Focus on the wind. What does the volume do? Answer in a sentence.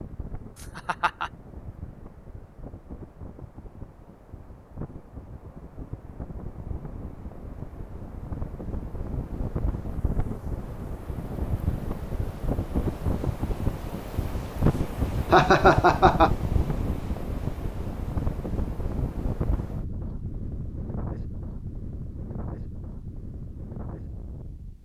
The volume of the wind goes up, then down.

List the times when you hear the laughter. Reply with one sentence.
The laughter can be heard from 0.6 to 1.3 s and from 15.3 to 16.3 s.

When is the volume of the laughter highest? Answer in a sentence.
The loudest moment of the laughter is at 16 seconds.